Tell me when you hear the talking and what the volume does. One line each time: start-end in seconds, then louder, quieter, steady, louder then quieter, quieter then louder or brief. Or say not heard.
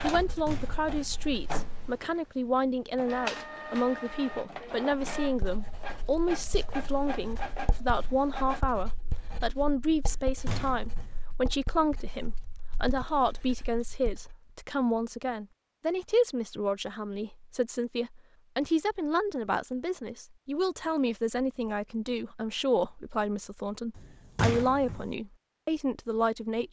0.0-26.6 steady.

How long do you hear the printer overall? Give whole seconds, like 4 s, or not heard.
9 s.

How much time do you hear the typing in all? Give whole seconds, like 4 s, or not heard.
not heard.